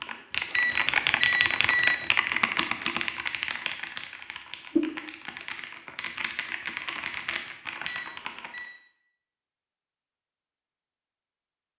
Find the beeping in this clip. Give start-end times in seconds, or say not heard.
0.5-2.1, 7.8-8.8.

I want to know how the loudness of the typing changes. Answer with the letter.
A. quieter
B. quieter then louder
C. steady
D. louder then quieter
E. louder
A.